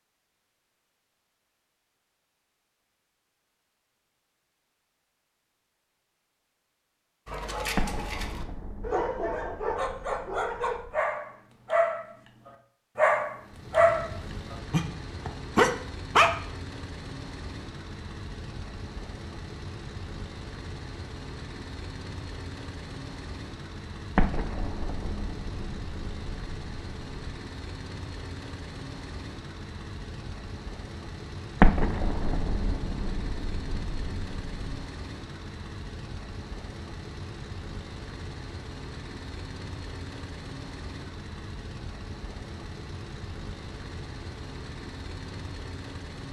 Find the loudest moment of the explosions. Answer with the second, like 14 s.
32 s.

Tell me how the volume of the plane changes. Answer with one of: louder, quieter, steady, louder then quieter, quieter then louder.
steady.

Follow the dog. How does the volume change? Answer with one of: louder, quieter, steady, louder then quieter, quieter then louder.
louder.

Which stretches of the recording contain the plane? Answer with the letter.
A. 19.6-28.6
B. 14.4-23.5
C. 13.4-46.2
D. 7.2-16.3
C.